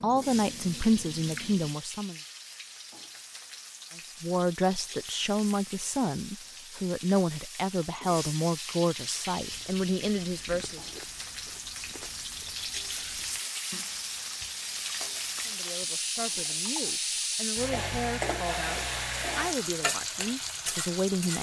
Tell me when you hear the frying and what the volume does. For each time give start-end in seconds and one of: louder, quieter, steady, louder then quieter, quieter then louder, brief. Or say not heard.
0.0-21.3 louder.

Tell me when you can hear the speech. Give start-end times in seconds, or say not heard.
0.0-2.2, 4.0-10.8, 15.4-21.3.